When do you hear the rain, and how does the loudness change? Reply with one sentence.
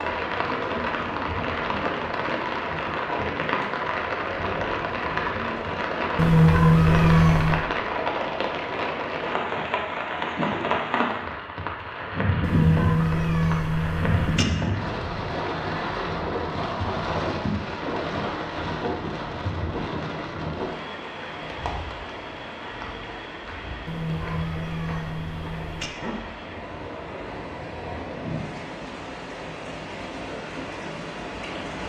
The rain can be heard from 0.0 to 31.8 s, getting quieter.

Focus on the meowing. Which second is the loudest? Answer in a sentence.
The loudest moment of the meowing is at 7 seconds.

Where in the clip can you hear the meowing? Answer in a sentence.
You can hear the meowing from 6.2 to 7.7 s, from 12.4 to 14.4 s and from 23.9 to 25.9 s.